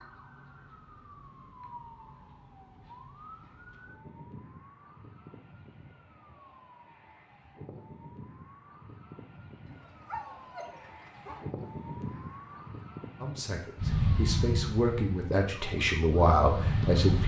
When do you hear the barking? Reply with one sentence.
The barking can be heard from 9.7 to 11.4 s.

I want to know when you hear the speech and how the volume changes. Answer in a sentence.
The speech can be heard from 13.2 to 17.2 s, getting louder.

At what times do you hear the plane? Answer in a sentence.
You can hear the plane from 13.8 to 17.2 s.